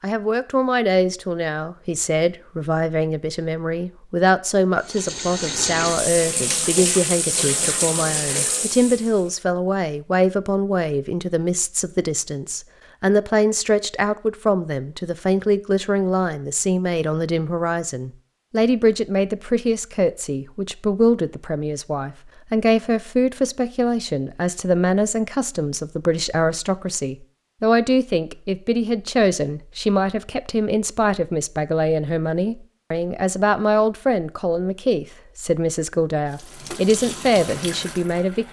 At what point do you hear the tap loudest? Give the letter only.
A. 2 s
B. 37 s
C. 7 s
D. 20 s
C.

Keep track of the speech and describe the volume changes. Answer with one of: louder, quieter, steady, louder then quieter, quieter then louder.
steady.